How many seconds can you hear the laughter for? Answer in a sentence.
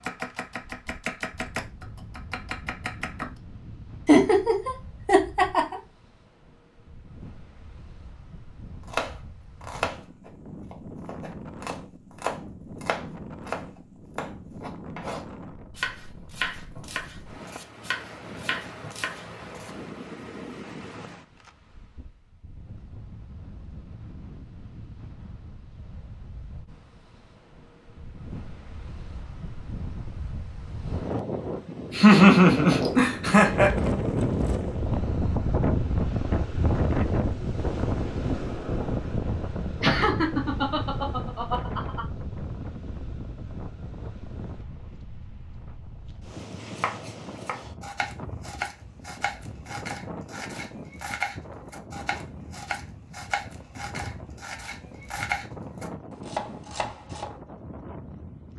You can hear the laughter for 6 seconds altogether.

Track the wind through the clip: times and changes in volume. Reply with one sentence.
The wind can be heard from 0.0 to 58.5 s, getting louder then quieter.